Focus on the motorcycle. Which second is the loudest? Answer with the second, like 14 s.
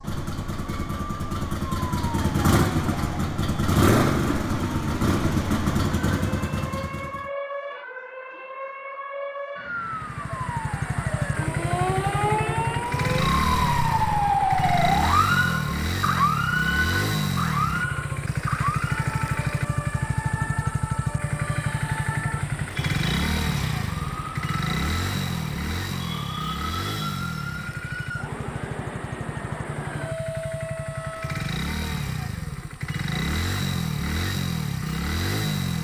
4 s.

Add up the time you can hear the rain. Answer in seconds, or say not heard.
not heard.